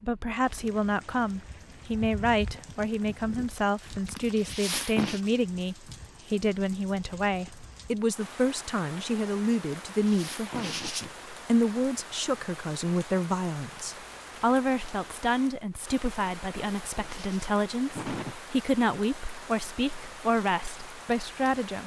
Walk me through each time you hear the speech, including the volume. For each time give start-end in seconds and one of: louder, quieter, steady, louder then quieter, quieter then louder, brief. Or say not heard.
0.0-21.8 steady.